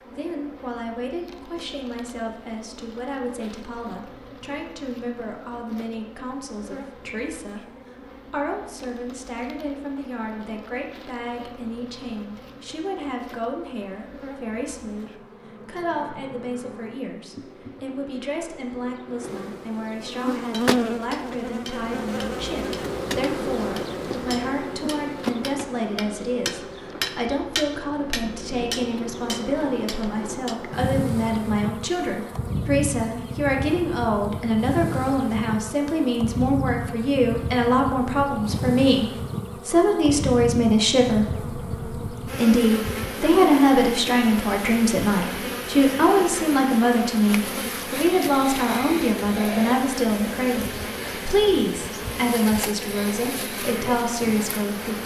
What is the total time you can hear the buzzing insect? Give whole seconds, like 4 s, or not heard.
55 s.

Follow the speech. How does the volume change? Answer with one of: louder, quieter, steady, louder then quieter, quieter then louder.
louder.